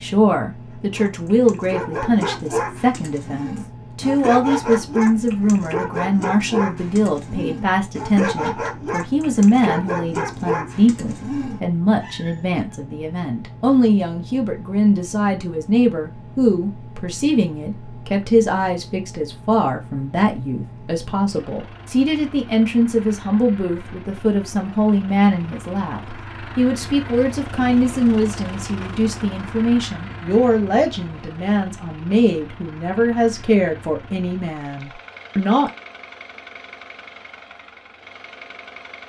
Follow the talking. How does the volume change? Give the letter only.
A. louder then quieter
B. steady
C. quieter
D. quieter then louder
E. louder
B.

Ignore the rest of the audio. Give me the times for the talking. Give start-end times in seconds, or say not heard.
0.0-35.7.